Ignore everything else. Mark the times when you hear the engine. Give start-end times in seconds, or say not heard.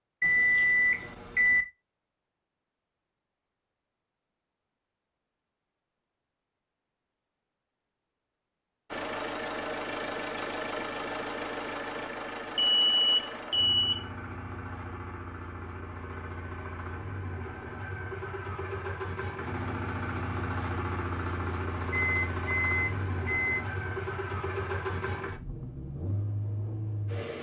8.9-27.3.